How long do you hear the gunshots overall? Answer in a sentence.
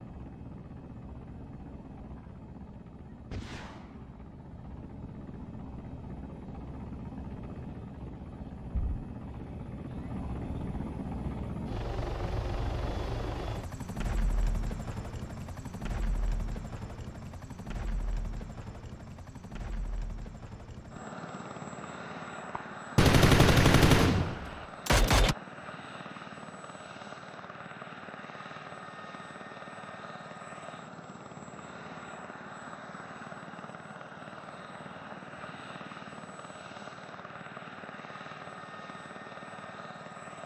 The gunshots can be heard for 3 seconds in total.